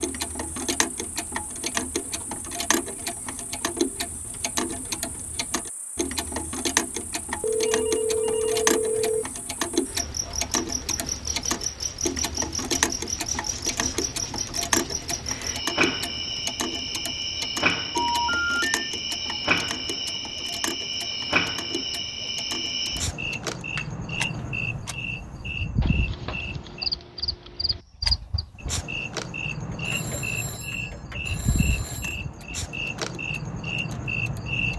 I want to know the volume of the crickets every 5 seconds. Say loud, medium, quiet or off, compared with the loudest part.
quiet, quiet, loud, loud, loud, loud, loud.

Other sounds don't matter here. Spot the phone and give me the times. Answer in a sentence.
The phone can be heard from 7.4 to 9.2 s, from 17.9 to 18.6 s and from 29.9 to 32.2 s.